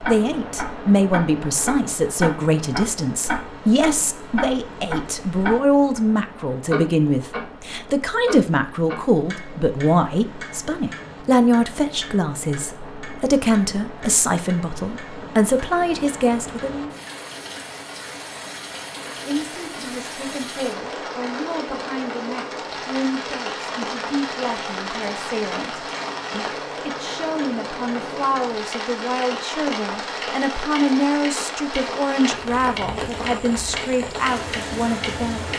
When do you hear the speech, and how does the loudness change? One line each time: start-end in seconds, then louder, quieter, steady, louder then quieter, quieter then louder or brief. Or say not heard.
0.1-16.9 steady
19.1-35.5 louder.